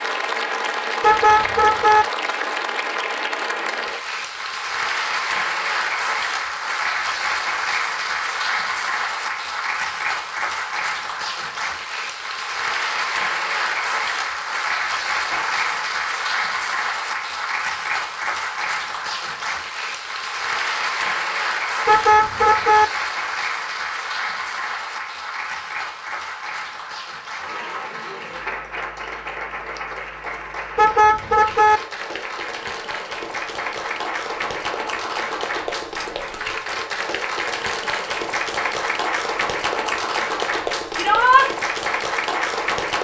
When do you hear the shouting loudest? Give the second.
41 s.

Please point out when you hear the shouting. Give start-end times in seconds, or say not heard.
15.3-15.9, 41.0-41.5.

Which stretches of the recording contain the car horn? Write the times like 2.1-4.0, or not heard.
1.0-2.0, 21.9-22.9, 30.8-31.8.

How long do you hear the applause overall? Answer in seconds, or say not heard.
43 s.